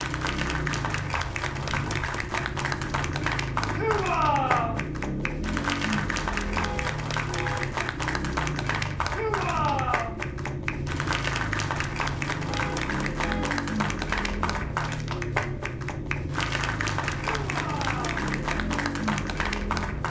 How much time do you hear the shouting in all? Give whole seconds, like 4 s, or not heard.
3 s.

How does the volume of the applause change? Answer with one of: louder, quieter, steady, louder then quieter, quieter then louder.
steady.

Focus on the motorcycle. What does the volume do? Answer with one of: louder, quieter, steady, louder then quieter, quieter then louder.
steady.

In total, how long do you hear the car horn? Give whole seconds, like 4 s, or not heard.
2 s.